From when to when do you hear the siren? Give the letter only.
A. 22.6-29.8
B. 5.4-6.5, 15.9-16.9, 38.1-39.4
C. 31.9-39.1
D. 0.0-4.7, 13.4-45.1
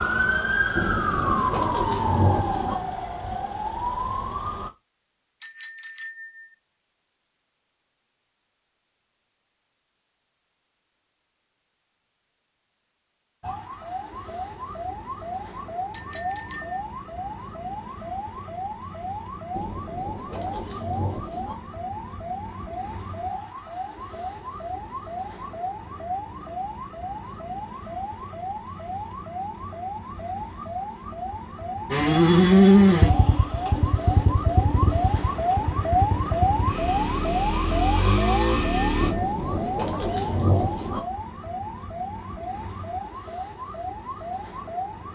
D.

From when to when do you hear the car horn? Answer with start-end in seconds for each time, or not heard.
not heard.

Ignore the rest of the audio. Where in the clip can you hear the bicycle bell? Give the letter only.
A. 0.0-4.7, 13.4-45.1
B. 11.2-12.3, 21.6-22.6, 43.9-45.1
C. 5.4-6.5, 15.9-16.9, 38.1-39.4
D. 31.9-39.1
C.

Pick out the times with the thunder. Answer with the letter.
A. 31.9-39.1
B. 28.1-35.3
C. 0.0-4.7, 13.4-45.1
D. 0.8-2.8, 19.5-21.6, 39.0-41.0
D.